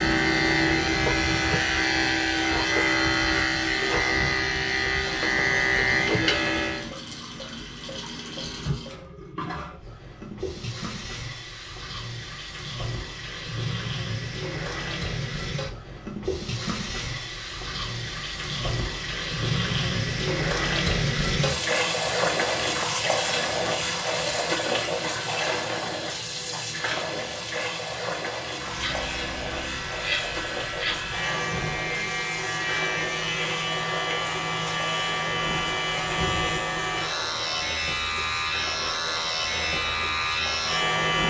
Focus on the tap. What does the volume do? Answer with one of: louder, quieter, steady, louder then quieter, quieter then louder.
louder then quieter.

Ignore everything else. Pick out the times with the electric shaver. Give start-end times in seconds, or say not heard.
0.0-6.9, 28.6-41.2.